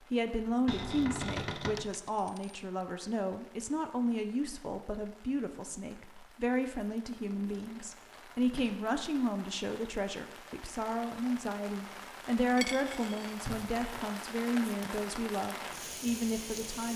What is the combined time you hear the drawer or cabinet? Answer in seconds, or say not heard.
3 s.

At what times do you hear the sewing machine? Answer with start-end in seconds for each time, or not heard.
not heard.